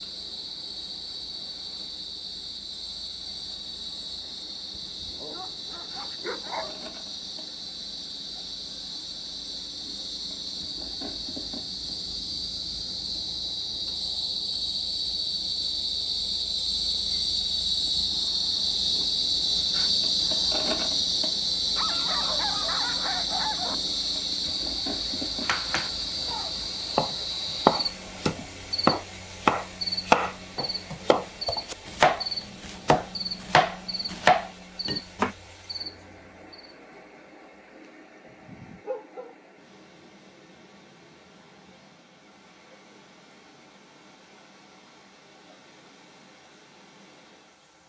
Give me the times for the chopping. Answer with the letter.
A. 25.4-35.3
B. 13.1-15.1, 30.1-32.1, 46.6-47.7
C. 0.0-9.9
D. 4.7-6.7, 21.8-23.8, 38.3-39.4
A.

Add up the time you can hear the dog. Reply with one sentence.
The dog can be heard for 5 seconds in total.